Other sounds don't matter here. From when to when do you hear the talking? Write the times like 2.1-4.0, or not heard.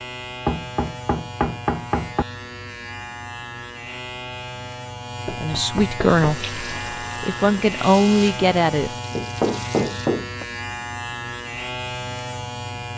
5.3-8.9.